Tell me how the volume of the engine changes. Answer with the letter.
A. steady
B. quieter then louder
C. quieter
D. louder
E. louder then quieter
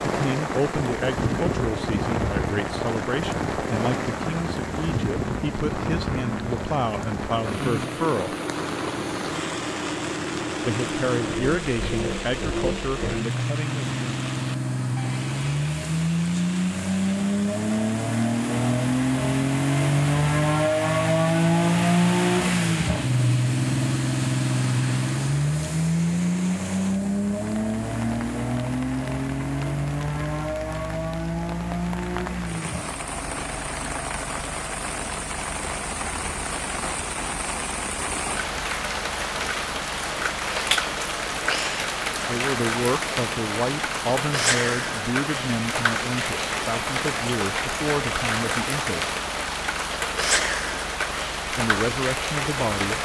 E.